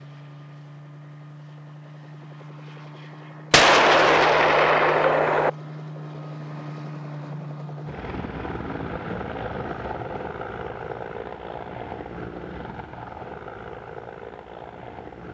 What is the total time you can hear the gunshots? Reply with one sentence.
The gunshots can be heard for 2 seconds in total.